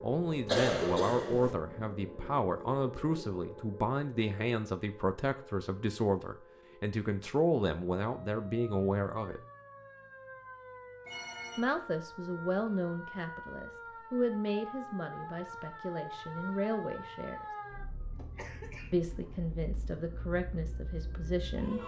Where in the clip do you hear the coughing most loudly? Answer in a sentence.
The loudest moment of the coughing is at 1 second.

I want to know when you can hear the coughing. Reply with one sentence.
You can hear the coughing from 0.5 to 1.6 s and from 18.4 to 18.9 s.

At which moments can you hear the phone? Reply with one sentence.
The phone can be heard from 11.1 to 11.7 s.